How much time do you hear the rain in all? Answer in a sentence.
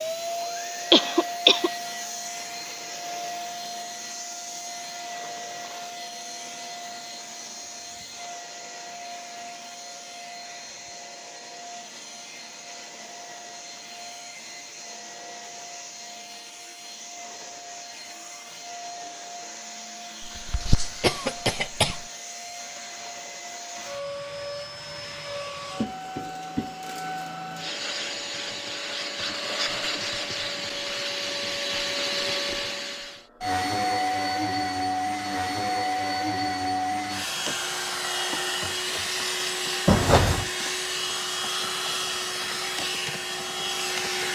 You can't hear the rain here.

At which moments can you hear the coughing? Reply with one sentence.
The coughing can be heard from 0.9 to 1.7 s, from 20.2 to 22.1 s and from 39.9 to 40.5 s.